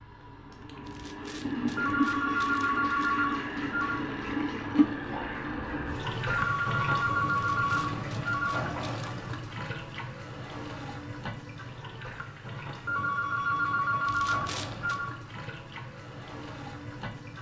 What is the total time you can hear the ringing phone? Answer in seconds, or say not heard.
7 s.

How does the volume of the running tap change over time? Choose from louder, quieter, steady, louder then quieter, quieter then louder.
quieter.